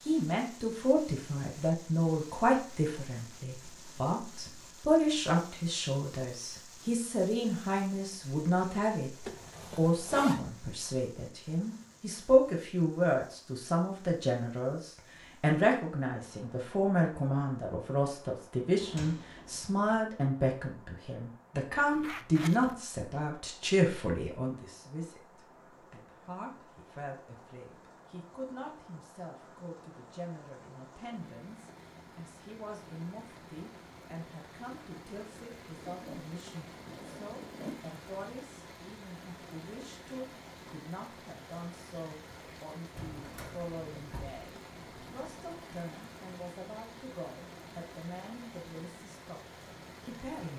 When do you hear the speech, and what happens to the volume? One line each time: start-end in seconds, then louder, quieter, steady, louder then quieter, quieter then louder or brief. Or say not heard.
0.1-50.5 quieter.